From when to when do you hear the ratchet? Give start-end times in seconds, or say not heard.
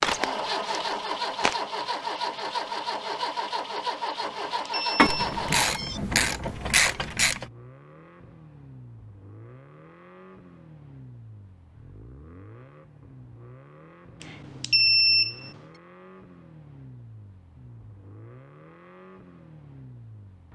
5.0-7.5.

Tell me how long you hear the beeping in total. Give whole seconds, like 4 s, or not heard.
3 s.